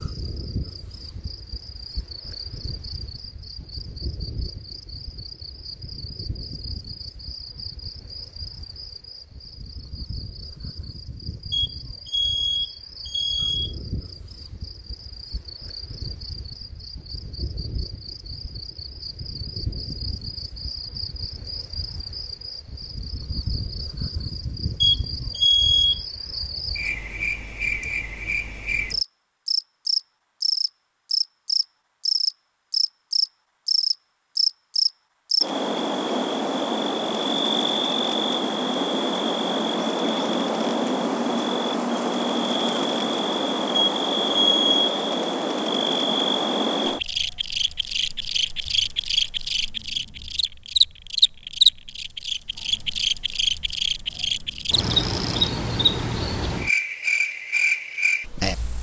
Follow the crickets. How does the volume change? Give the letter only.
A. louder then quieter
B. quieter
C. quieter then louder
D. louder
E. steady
D.